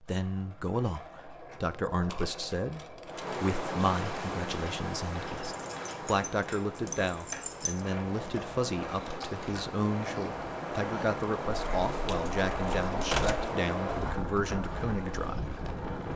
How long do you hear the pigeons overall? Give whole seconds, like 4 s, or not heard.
not heard.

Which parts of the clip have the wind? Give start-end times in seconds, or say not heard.
3.0-16.1.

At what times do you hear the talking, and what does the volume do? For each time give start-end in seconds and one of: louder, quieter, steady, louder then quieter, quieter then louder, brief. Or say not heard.
0.0-16.1 steady.